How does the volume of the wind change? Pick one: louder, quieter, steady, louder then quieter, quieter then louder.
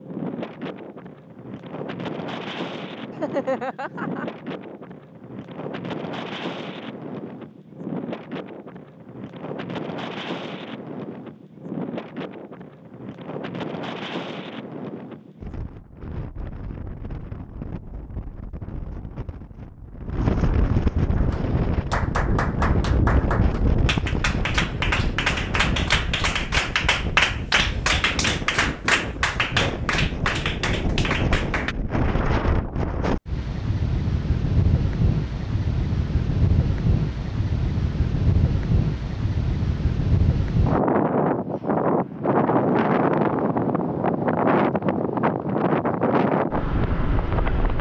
louder.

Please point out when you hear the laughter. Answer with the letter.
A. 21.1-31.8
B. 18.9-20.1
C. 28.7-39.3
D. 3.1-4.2
D.